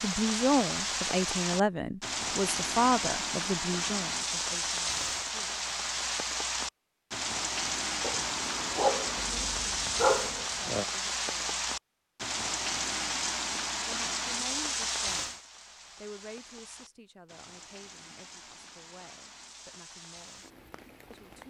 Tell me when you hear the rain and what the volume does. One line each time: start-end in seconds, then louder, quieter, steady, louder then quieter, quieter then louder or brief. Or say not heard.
0.0-21.4 quieter.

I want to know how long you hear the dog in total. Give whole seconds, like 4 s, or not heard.
3 s.